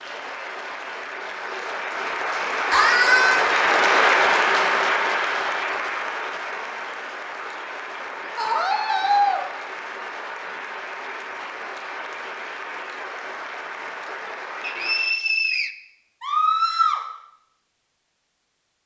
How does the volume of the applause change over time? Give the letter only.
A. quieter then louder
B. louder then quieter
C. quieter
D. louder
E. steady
B.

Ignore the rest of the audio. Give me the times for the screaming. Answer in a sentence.
The screaming can be heard from 2.7 to 3.5 s, from 8.3 to 9.4 s and from 16.2 to 17.0 s.